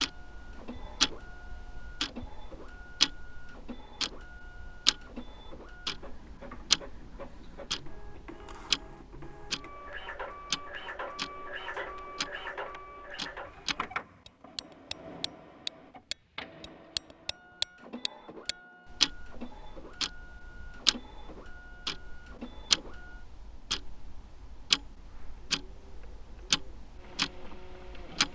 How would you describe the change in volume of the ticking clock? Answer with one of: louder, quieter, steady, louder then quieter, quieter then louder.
quieter then louder.